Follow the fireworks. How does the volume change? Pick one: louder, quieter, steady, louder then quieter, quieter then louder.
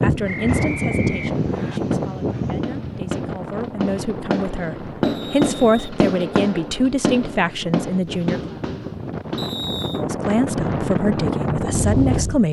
louder then quieter.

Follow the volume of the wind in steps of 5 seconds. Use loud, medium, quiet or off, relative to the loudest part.
loud, medium, loud.